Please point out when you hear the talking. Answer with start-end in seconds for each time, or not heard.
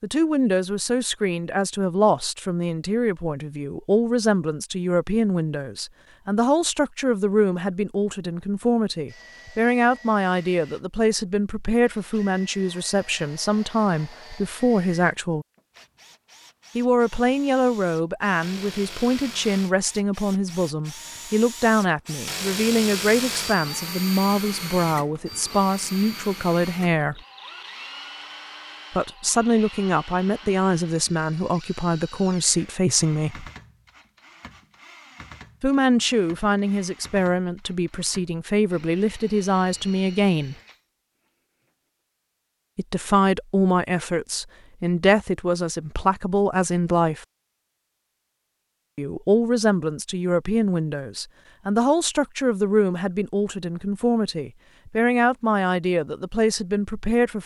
0.0-15.4, 16.8-27.2, 28.9-33.5, 35.6-40.5, 42.8-47.2, 49.0-57.4.